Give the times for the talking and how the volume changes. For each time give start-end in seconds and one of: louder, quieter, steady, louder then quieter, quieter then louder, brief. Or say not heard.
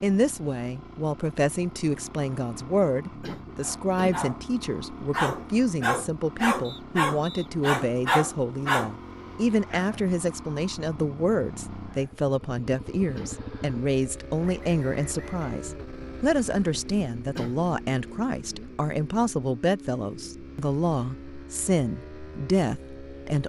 0.0-23.4 steady.